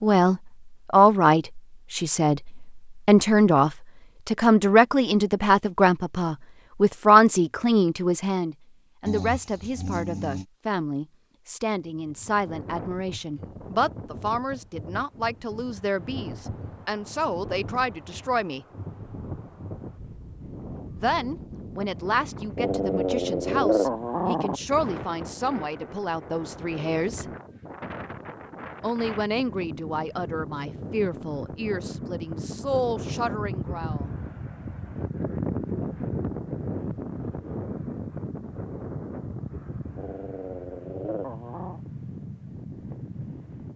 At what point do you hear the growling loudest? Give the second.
24 s.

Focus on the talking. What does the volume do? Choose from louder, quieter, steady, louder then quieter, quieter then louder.
quieter.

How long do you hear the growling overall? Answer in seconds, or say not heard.
5 s.